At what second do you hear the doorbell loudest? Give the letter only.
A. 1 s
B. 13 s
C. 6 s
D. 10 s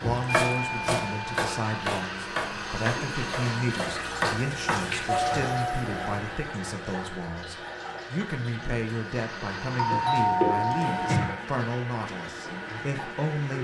D.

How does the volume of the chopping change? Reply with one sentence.
The loudness of the chopping goes down, then up.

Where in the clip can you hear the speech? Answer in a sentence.
You can hear the speech from 0.0 to 13.6 s.